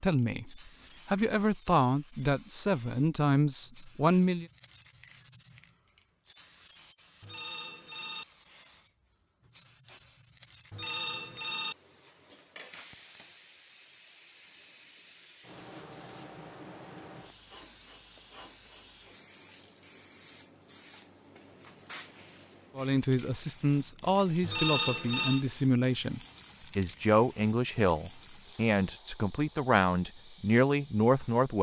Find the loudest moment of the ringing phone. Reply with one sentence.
The volume of the ringing phone peaks at 25 seconds.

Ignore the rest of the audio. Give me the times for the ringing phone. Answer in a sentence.
The ringing phone can be heard from 7.2 to 8.2 s, from 10.7 to 11.8 s and from 24.4 to 25.4 s.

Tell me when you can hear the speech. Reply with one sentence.
The speech can be heard from 0.0 to 4.5 s and from 22.8 to 31.5 s.